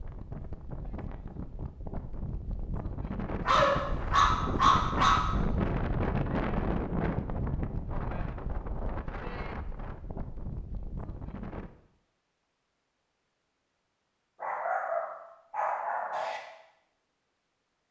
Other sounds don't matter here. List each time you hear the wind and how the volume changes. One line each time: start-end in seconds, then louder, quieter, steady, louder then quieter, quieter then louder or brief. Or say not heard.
0.0-11.7 louder then quieter.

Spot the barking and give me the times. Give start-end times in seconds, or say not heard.
3.5-5.2, 14.4-16.4.